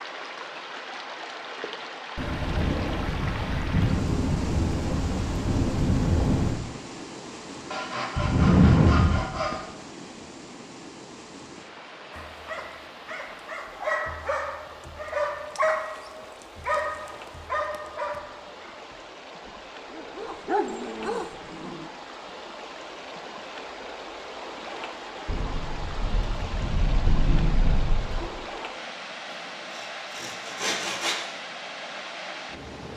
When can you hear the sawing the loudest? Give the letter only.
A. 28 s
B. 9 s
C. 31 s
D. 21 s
B.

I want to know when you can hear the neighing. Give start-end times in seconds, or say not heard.
not heard.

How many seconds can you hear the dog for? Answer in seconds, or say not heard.
10 s.